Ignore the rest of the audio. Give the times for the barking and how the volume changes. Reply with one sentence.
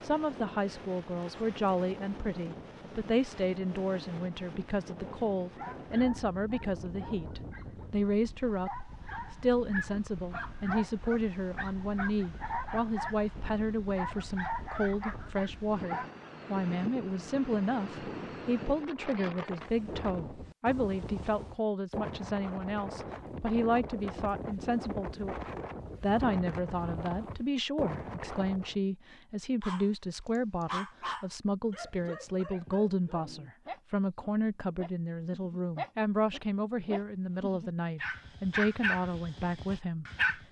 The barking can be heard from 5.5 to 16.3 s, getting louder; and from 29.6 to 40.4 s, getting quieter then louder.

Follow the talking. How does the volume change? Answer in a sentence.
The volume of the talking stays about the same.